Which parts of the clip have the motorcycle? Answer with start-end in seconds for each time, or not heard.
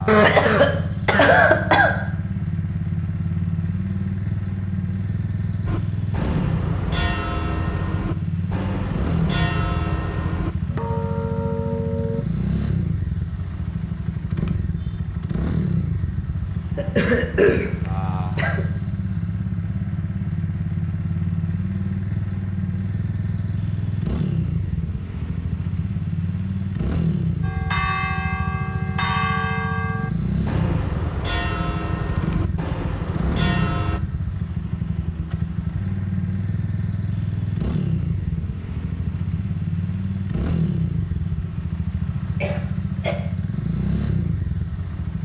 0.0-45.2.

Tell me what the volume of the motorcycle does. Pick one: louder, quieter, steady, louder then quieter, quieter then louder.
steady.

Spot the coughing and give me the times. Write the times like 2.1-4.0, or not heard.
0.1-1.9, 16.8-18.6, 42.4-43.1.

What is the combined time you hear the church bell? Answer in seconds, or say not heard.
13 s.